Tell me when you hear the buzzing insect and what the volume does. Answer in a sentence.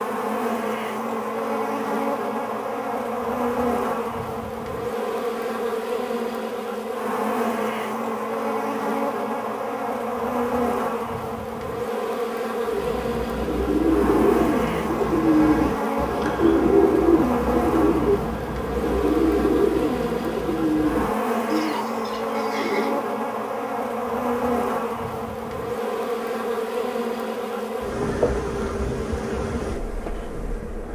The buzzing insect can be heard from 0.0 to 30.9 s, at a steady volume.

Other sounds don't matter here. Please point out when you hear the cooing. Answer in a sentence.
The cooing can be heard from 12.7 to 23.0 s.